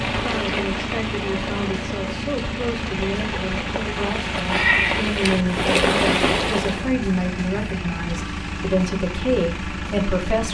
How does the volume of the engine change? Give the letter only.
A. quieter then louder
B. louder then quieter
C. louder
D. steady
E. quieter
D.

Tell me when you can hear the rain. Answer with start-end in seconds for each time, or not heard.
0.0-6.9.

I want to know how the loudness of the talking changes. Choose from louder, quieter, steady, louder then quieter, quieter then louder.
louder.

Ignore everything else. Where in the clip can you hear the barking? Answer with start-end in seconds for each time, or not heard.
not heard.